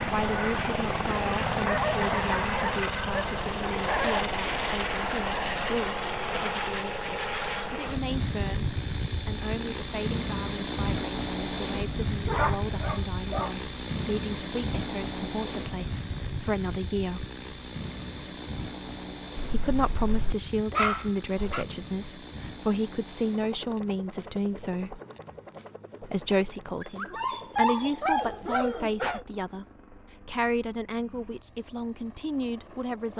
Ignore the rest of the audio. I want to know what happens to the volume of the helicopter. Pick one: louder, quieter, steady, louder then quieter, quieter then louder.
quieter.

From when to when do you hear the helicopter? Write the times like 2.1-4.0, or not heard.
0.0-33.1.